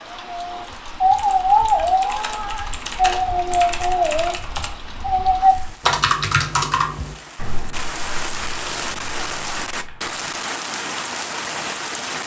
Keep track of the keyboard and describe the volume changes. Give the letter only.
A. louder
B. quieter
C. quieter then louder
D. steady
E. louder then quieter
B.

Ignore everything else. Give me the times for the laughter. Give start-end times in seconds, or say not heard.
not heard.